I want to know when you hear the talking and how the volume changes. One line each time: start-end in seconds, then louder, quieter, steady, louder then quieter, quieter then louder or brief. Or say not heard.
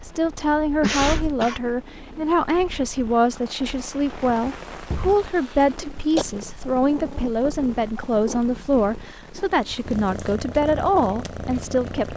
0.0-12.1 steady.